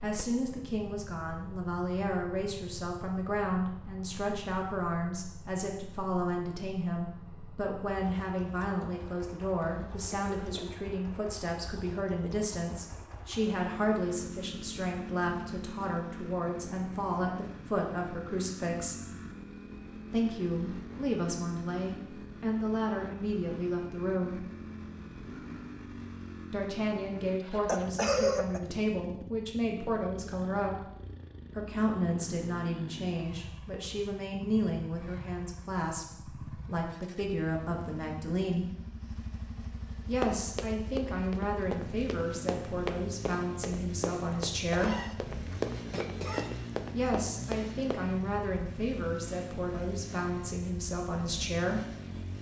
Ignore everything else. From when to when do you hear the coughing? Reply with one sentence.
You can hear the coughing from 9.7 to 10.7 s, from 27.6 to 28.6 s and from 44.7 to 46.6 s.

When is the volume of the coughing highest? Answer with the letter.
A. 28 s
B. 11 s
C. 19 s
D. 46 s
A.